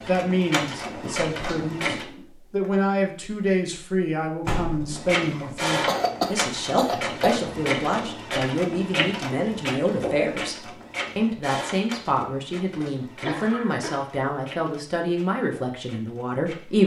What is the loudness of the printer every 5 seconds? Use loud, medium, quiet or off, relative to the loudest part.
loud, loud, medium, quiet.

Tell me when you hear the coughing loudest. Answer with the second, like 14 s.
6 s.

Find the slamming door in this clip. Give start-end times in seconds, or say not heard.
4.5-5.0.